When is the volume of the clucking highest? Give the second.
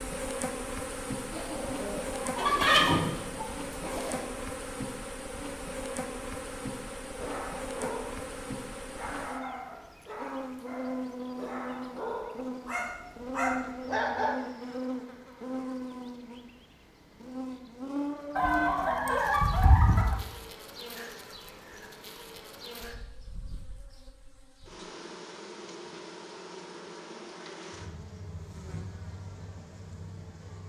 3 s.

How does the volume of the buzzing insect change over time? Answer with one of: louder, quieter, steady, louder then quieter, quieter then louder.
quieter.